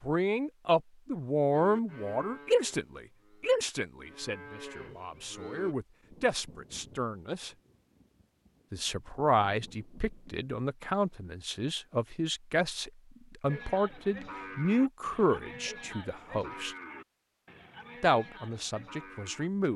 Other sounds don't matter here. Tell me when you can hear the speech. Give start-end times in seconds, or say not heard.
0.0-7.5, 8.7-16.8, 18.0-19.7.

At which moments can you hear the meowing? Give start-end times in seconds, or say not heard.
not heard.